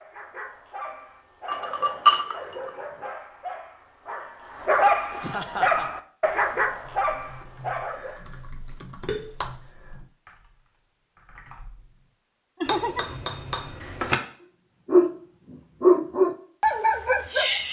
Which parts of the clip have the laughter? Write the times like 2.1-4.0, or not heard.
5.2-5.9, 12.6-13.2.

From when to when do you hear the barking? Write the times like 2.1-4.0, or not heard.
0.0-8.2, 14.8-17.6.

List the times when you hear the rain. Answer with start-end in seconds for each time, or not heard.
not heard.